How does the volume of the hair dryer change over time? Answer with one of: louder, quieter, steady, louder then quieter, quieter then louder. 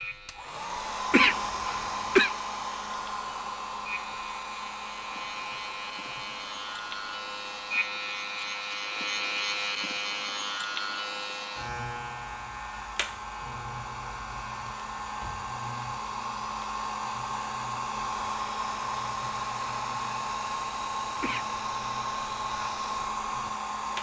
quieter then louder.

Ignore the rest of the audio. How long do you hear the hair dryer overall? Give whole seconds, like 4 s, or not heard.
24 s.